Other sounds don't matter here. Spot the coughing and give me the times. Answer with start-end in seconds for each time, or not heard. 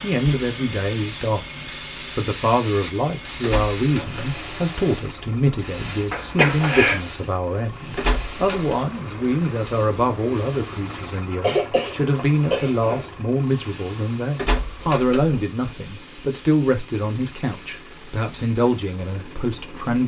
6.1-7.0, 10.9-13.1.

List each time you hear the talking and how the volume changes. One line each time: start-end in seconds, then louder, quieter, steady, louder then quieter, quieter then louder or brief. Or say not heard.
0.0-20.0 steady.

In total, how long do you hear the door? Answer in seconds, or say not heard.
3 s.